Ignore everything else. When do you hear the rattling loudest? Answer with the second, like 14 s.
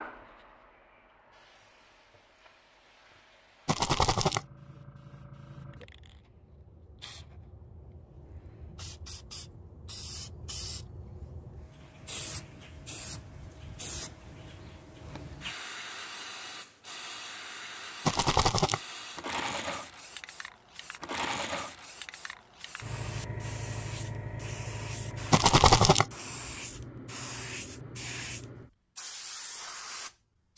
26 s.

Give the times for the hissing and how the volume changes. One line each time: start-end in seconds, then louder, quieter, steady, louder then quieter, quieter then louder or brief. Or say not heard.
0.0-30.5 louder.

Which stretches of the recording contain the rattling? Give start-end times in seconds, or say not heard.
3.6-4.4, 18.1-18.8, 25.3-26.1.